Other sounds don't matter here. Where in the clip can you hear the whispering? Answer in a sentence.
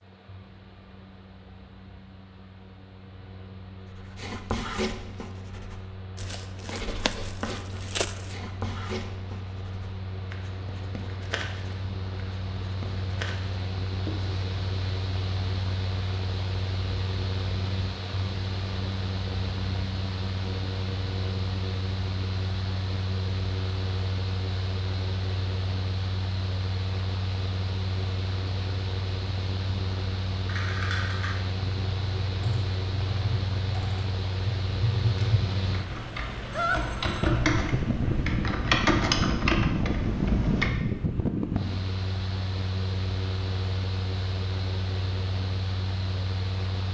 The whispering can't be heard in this clip.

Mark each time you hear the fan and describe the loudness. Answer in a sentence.
You can hear the fan from 0.0 to 46.9 s, getting louder.